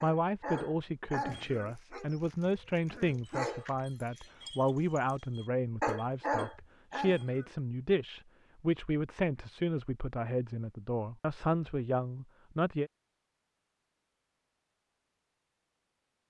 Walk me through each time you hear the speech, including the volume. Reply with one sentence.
The speech can be heard from 0.0 to 12.9 s, at a steady volume.